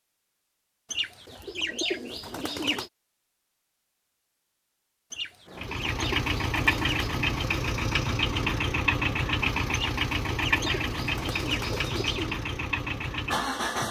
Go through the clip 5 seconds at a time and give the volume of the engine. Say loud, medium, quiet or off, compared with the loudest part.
off, loud, loud.